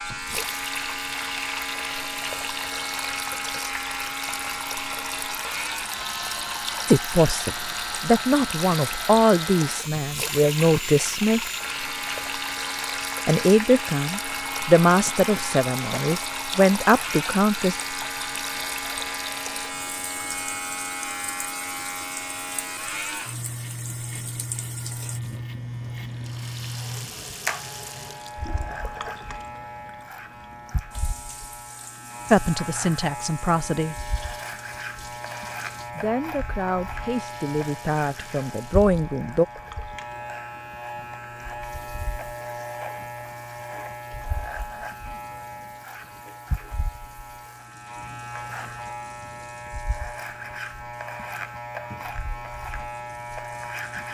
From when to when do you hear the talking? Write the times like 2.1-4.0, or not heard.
6.8-11.4, 13.2-17.8, 32.3-34.0, 36.0-39.5.